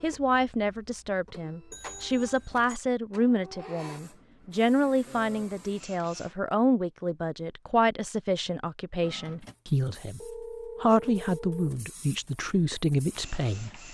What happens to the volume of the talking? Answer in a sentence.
The volume of the talking stays about the same.